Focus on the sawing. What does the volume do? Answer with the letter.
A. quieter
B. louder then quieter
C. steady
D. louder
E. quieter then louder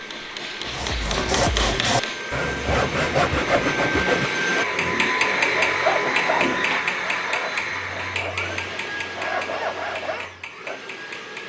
E.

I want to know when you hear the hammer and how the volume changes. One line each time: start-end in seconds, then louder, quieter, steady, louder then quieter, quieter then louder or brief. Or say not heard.
0.0-2.2 brief
4.6-11.4 quieter.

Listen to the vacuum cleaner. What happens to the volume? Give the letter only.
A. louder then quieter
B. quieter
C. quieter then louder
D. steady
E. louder
A.